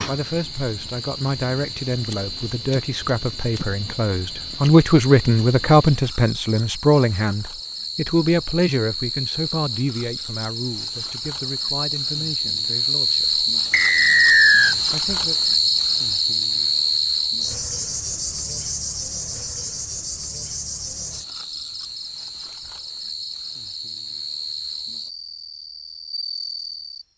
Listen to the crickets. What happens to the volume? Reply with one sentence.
The loudness of the crickets goes up, then down.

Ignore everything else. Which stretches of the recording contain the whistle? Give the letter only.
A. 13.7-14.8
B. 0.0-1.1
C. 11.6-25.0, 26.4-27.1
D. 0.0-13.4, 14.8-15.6
A.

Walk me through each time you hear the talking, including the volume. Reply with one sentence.
The talking can be heard from 0.0 to 13.4 s, getting louder then quieter; and briefly from 14.8 to 15.6 s.